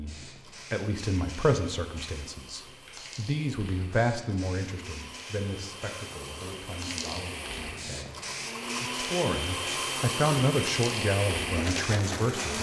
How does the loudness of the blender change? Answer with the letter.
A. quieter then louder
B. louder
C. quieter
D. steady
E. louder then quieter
B.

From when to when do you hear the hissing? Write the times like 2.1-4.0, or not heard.
0.0-12.5.